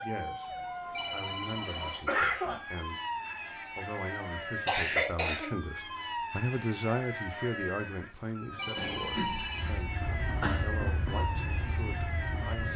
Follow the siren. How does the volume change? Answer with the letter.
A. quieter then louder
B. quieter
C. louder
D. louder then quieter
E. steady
E.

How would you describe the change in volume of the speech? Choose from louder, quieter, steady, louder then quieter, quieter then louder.
louder then quieter.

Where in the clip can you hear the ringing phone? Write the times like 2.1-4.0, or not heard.
0.9-2.2, 8.6-9.8.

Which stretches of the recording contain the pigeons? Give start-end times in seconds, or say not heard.
not heard.